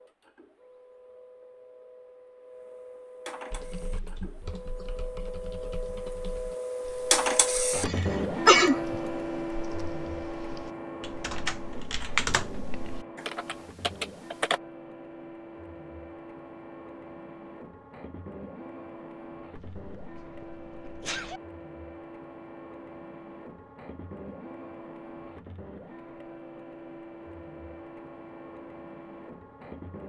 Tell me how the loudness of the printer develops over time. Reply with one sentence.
The loudness of the printer goes up, then down.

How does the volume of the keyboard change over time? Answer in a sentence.
The loudness of the keyboard goes down, then up.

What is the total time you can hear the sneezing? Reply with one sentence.
The sneezing can be heard for 3 seconds in total.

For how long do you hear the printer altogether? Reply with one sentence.
The printer can be heard for 30 seconds in total.